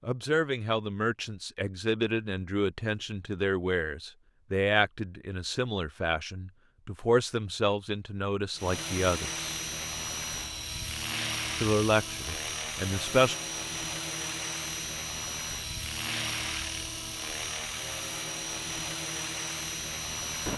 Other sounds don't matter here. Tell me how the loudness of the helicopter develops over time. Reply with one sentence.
The loudness of the helicopter stays about the same.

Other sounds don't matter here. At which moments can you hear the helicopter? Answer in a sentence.
You can hear the helicopter from 8.6 to 20.5 s.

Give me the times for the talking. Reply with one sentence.
You can hear the talking from 0.1 to 9.4 s and from 11.6 to 13.3 s.